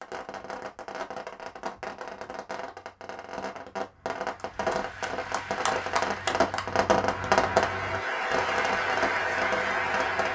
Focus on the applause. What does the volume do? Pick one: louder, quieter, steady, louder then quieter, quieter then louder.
louder.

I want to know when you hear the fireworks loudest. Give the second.
7 s.